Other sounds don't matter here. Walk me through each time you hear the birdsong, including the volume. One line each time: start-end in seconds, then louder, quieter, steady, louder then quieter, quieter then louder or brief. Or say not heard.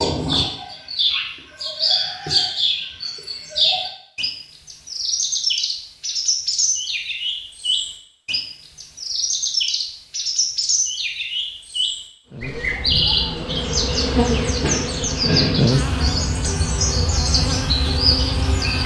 0.0-18.8 steady.